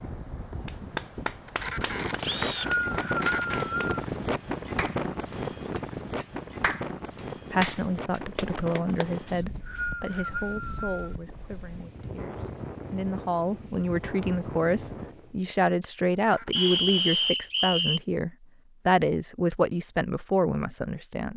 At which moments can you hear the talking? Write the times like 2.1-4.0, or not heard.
7.5-21.3.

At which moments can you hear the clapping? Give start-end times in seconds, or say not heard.
0.7-9.1.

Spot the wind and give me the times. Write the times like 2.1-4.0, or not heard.
0.0-15.4.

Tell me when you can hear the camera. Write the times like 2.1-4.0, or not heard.
1.4-3.8, 16.1-17.4.